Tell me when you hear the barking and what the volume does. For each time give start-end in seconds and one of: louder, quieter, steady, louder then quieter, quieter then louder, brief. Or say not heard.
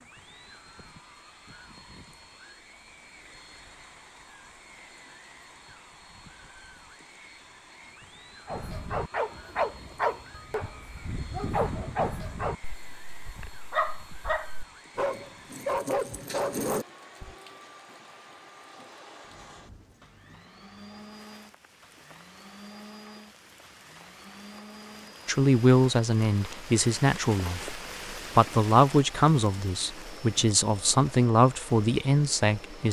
8.4-17.4 quieter then louder.